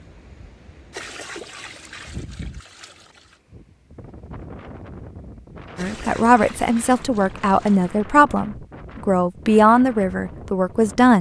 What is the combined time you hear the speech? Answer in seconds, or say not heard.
5 s.